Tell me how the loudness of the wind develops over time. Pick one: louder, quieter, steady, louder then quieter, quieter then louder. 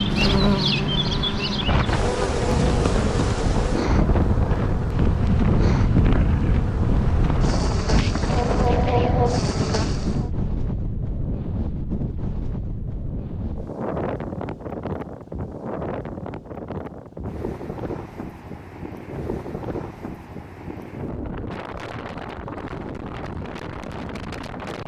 quieter.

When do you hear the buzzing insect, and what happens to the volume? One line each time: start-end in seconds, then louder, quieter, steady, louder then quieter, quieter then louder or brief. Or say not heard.
0.0-10.3 quieter then louder.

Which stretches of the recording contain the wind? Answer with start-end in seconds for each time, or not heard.
0.0-24.8.